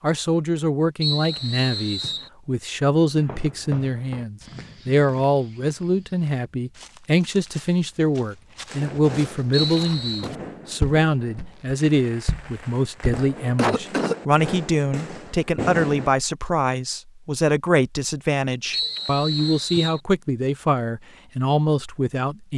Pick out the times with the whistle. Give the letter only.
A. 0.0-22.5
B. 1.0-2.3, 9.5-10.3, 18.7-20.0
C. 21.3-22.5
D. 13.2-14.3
B.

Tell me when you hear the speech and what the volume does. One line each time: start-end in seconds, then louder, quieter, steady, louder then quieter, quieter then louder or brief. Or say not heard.
0.0-22.5 steady.